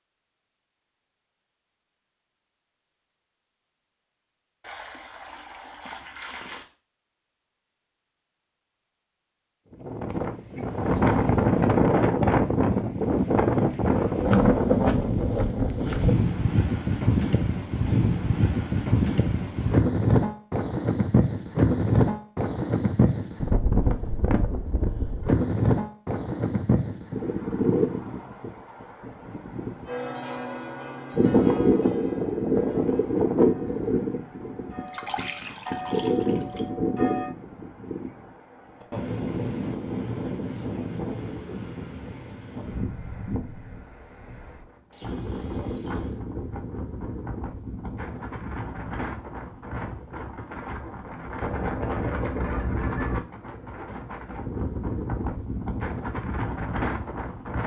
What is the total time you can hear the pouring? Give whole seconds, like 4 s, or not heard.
5 s.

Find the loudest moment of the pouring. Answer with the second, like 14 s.
35 s.